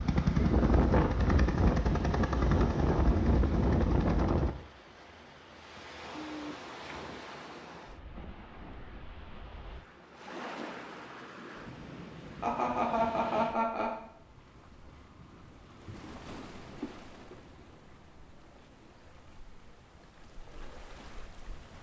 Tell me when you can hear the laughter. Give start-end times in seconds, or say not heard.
12.4-13.9.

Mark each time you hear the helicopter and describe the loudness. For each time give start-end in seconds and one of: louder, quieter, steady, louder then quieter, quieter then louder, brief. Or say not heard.
0.0-4.5 steady.